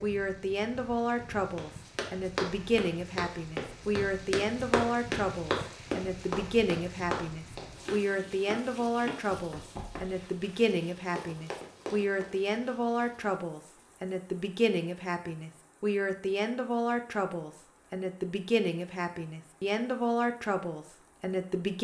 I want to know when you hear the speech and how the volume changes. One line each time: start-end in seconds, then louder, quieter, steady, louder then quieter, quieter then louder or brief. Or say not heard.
0.0-21.7 steady.